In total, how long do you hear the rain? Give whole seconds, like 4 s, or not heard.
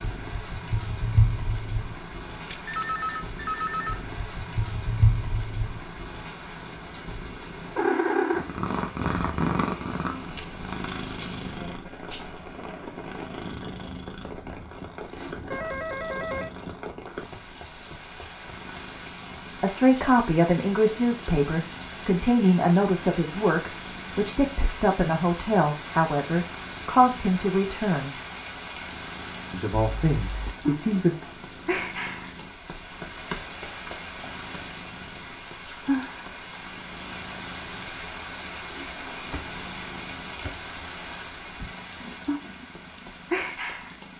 44 s.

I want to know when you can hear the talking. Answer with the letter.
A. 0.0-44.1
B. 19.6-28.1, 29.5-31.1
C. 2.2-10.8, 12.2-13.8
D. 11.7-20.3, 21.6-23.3
B.